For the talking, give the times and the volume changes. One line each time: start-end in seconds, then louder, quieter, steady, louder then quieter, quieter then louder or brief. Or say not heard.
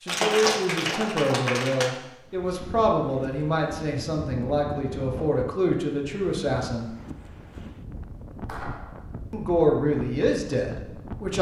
0.0-6.9 steady
9.3-11.3 brief.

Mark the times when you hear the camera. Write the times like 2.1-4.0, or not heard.
not heard.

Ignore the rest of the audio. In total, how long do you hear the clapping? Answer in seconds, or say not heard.
3 s.